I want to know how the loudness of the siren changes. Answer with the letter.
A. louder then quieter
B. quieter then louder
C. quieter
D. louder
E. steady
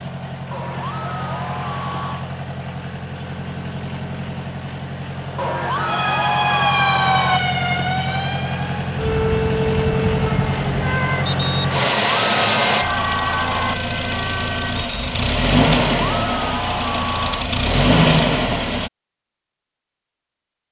C.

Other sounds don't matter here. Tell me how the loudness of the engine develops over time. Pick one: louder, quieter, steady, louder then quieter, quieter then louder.
louder.